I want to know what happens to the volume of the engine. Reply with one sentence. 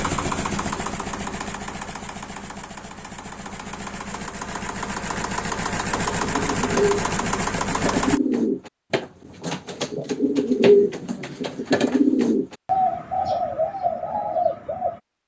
The loudness of the engine goes down, then up.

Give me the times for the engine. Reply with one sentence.
You can hear the engine from 0.0 to 8.2 s.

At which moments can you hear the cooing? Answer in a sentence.
The cooing can be heard from 5.9 to 15.0 s.